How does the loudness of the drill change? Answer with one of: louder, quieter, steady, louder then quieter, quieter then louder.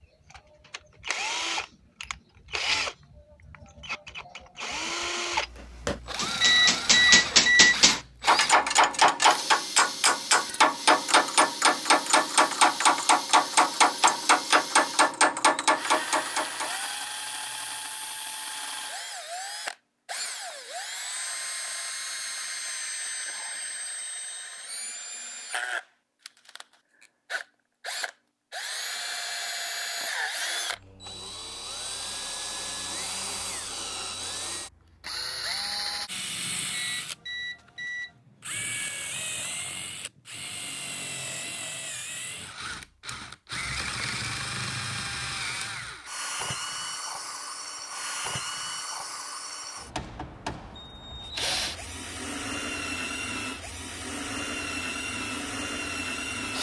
steady.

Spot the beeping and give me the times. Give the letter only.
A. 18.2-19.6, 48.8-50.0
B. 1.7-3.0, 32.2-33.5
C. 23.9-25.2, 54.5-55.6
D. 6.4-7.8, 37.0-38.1
D.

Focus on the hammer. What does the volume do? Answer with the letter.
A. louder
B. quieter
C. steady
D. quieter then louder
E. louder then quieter
C.